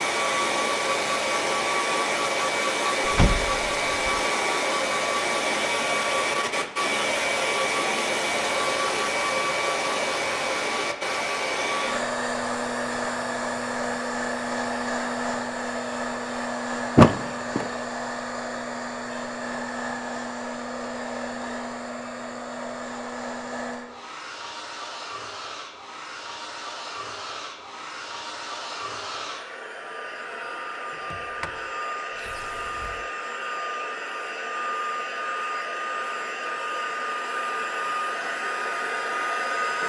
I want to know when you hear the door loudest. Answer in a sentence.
The loudest moment of the door is at 17 seconds.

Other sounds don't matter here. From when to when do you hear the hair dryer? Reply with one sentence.
The hair dryer can be heard from 0.0 to 39.8 s.